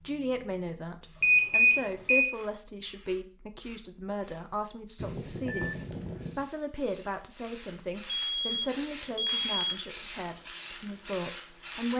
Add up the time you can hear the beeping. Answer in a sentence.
You can hear the beeping for 4 seconds altogether.